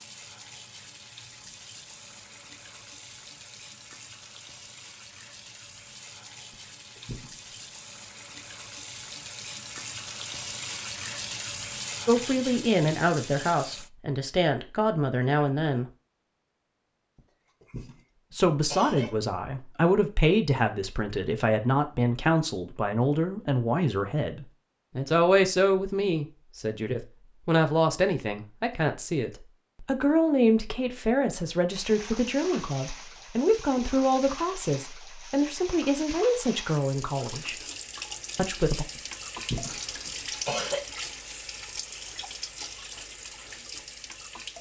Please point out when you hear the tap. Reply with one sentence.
The tap can be heard from 0.0 to 13.9 s and from 31.7 to 44.5 s.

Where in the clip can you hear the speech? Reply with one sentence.
You can hear the speech from 12.1 to 15.8 s, from 18.3 to 37.5 s and from 38.4 to 38.9 s.